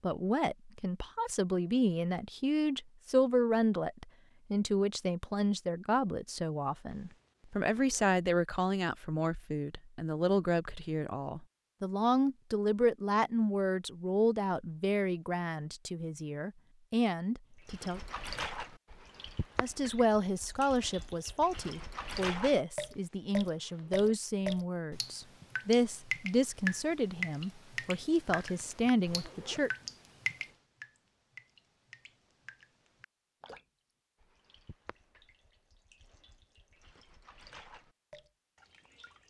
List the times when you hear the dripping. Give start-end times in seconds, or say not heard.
17.6-39.2.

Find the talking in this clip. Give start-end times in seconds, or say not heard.
0.0-18.0, 19.6-29.7.